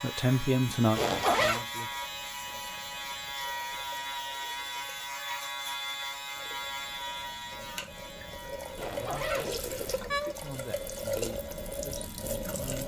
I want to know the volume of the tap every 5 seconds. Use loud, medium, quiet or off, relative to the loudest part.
quiet, medium, loud.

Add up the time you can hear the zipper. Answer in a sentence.
The zipper can be heard for 2 seconds in total.